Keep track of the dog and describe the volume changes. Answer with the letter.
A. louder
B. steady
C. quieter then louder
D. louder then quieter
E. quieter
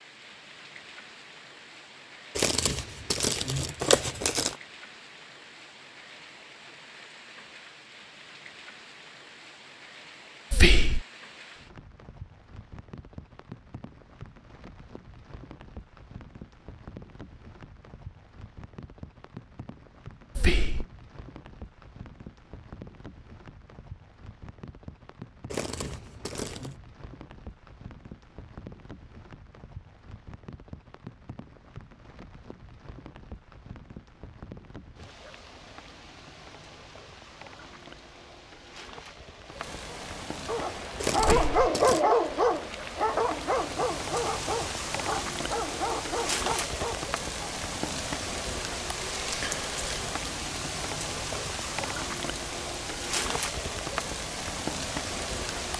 E.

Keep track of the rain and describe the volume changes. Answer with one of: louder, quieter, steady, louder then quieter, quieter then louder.
louder.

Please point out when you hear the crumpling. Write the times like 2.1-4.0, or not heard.
2.4-4.5, 25.5-26.8, 41.0-42.0.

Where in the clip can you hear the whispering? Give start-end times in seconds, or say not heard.
10.5-11.1, 20.4-20.9, 41.1-41.7.